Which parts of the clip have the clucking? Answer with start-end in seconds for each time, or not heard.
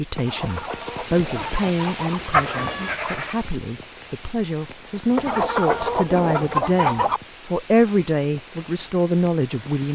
0.1-2.2, 5.2-7.2.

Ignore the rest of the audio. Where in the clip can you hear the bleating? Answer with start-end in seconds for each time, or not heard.
1.4-3.4.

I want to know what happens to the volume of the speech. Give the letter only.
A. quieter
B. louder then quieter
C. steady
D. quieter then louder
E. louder
D.